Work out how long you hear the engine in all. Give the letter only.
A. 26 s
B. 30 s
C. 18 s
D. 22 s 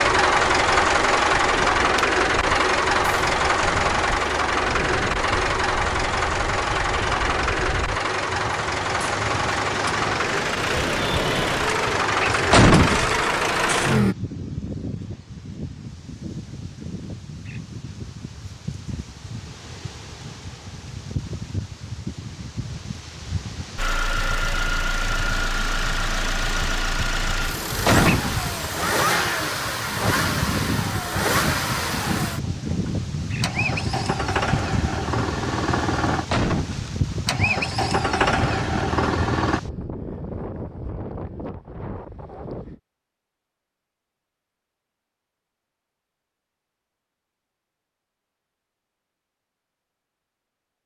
B.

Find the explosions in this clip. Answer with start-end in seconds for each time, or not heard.
12.5-13.2, 27.9-28.4, 36.3-37.0.